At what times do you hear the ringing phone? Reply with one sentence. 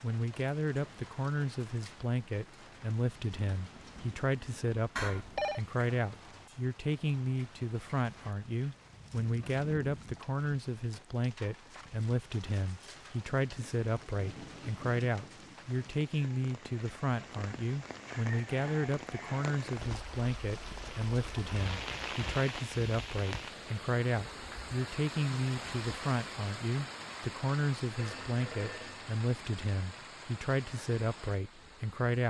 The ringing phone can be heard from 5.0 to 5.6 s and from 27.9 to 29.1 s.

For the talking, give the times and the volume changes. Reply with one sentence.
The talking can be heard from 0.0 to 32.2 s, at a steady volume.